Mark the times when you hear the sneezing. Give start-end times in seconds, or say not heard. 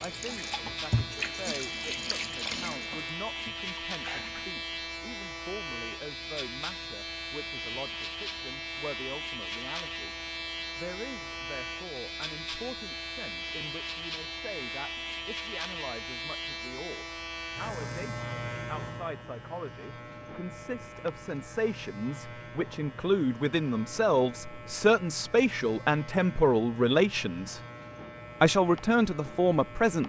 not heard.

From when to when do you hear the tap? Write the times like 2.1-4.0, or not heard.
0.0-4.6.